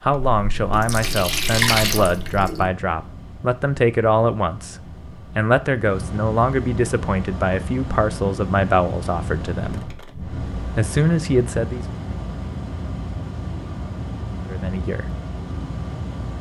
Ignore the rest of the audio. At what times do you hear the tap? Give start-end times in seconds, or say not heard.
0.1-2.7.